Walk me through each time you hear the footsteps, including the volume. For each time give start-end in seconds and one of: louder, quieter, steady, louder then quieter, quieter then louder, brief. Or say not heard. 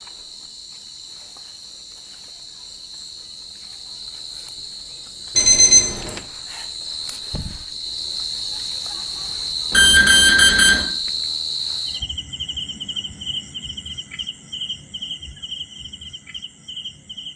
not heard.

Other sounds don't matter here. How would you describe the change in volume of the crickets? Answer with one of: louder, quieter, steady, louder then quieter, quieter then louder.
louder then quieter.